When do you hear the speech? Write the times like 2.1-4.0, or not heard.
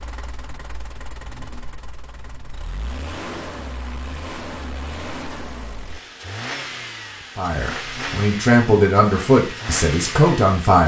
7.3-10.8.